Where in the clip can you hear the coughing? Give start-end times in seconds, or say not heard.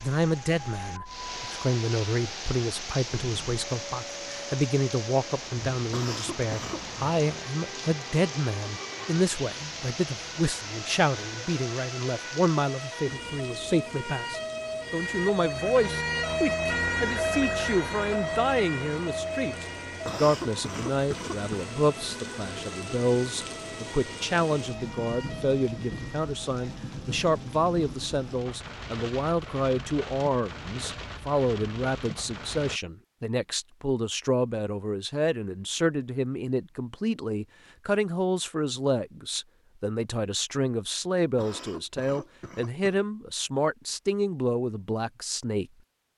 5.9-6.8, 20.1-21.6, 41.4-42.9.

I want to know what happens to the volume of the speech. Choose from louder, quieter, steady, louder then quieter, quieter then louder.
steady.